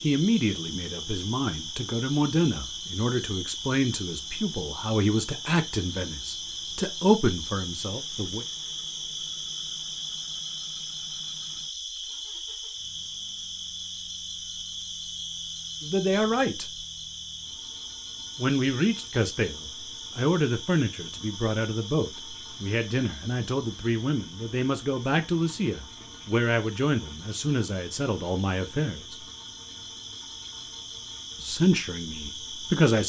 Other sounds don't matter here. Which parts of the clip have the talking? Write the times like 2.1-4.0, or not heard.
0.0-8.4, 15.8-16.6, 18.4-29.2, 31.4-33.0.